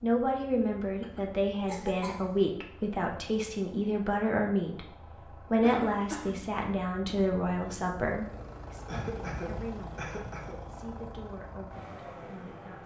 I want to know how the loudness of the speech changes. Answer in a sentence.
The loudness of the speech goes down.